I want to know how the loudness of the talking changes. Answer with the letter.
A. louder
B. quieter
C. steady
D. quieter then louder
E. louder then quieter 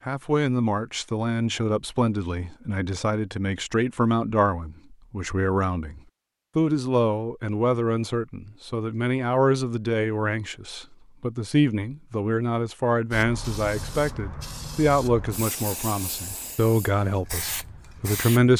C.